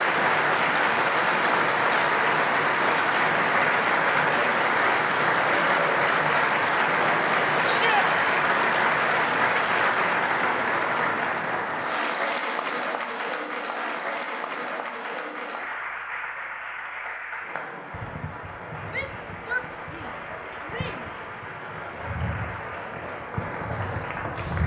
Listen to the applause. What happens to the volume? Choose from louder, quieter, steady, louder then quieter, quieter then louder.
quieter.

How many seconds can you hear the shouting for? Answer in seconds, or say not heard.
3 s.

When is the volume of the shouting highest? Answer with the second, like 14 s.
8 s.